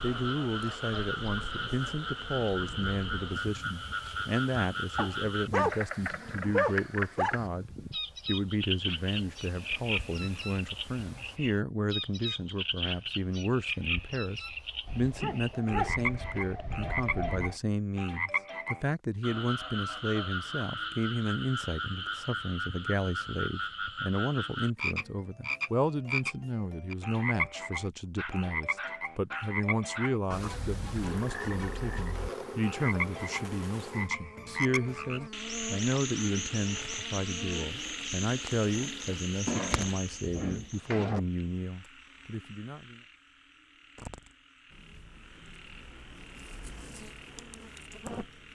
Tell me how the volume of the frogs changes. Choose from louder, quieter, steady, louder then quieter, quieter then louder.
quieter.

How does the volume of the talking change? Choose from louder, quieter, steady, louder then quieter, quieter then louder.
steady.